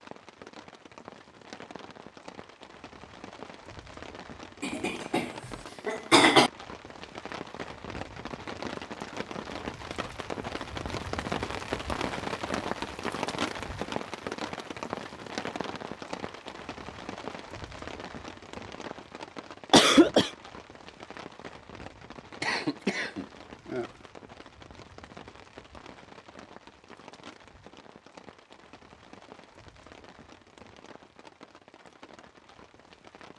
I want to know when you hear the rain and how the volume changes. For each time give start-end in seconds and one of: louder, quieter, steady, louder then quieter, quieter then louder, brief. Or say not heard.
0.0-33.3 louder then quieter.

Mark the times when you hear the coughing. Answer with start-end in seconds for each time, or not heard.
4.6-6.5, 19.7-20.3, 22.4-23.9.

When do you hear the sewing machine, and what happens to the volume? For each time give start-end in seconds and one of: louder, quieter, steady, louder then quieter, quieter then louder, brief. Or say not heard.
not heard.